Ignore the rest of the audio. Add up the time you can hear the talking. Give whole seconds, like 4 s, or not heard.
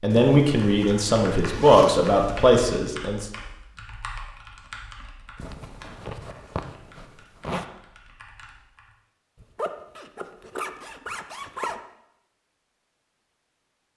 3 s.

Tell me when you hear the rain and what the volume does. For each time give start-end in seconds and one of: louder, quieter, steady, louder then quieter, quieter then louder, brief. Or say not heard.
not heard.